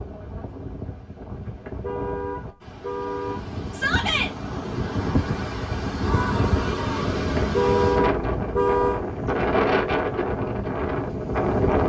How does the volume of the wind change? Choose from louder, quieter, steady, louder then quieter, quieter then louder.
louder.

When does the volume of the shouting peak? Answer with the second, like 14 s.
4 s.